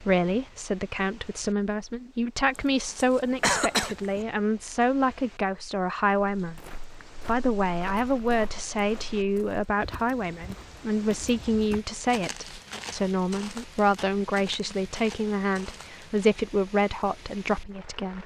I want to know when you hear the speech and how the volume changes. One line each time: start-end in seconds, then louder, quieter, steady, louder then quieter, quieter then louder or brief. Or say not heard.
0.0-18.2 steady.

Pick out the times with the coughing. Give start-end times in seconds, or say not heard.
2.5-4.2.